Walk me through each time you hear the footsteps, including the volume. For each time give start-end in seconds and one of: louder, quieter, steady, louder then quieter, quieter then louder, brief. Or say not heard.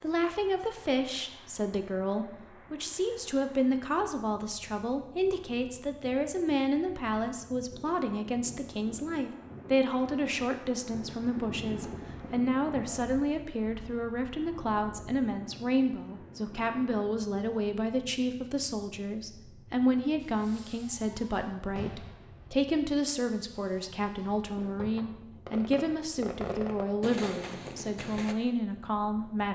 not heard.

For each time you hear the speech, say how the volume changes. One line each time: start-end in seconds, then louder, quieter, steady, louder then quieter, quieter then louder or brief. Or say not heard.
0.0-29.5 steady.